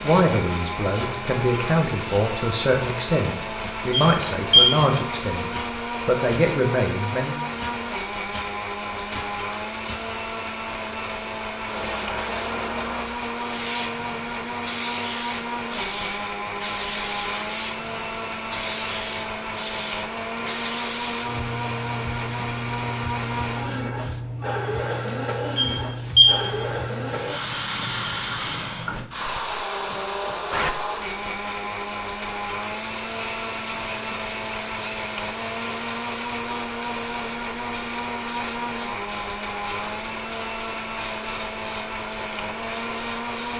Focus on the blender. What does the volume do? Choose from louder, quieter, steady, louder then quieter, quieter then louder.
steady.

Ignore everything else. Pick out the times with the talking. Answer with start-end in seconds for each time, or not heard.
0.0-7.4.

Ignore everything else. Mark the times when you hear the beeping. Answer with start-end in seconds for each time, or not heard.
3.9-4.8, 25.6-26.4.